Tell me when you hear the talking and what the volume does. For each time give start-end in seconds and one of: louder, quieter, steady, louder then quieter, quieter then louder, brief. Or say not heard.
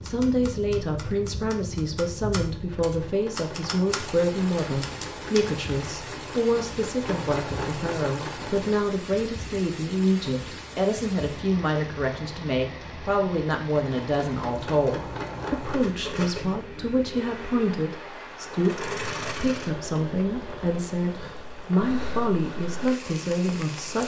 0.0-24.0 steady.